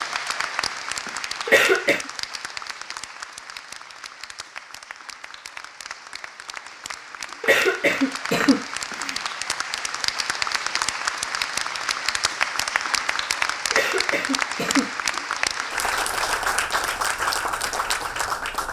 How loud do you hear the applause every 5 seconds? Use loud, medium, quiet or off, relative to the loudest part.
medium, medium, loud, loud.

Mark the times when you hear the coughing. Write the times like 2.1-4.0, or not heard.
1.4-2.0, 7.4-9.2, 13.7-14.9.